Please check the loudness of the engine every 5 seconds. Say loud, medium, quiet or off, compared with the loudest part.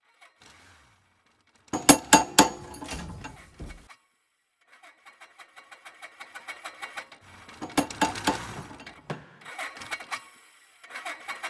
quiet, loud, loud.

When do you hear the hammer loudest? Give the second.
2 s.